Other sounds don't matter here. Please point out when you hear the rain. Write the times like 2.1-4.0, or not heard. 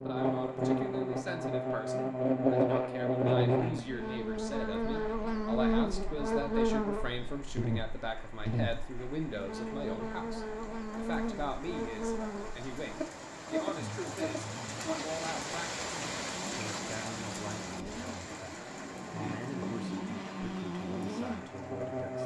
0.2-22.2.